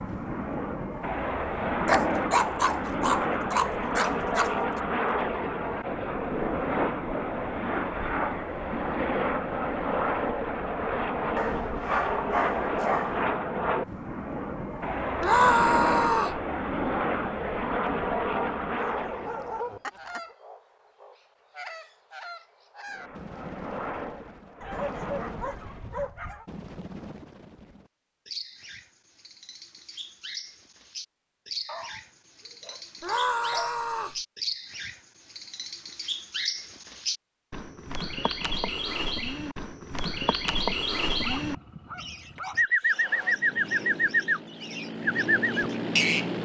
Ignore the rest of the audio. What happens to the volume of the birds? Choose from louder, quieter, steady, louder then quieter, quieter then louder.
louder.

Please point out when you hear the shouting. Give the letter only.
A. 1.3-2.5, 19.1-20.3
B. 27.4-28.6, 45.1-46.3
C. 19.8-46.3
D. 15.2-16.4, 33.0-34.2
D.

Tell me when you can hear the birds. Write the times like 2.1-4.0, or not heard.
19.8-46.3.